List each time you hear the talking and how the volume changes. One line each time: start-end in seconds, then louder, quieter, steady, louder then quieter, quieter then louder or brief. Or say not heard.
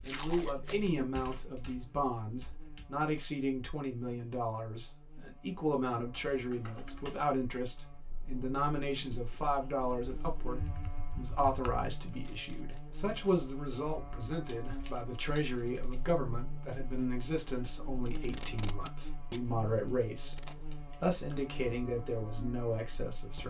0.0-23.4 steady.